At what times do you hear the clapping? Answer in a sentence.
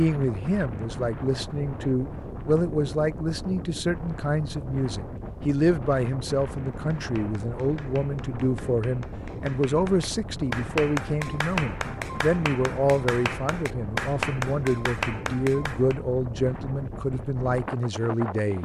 You can hear the clapping from 6.7 to 16.0 s.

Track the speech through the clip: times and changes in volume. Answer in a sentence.
The speech can be heard from 0.0 to 18.6 s, at a steady volume.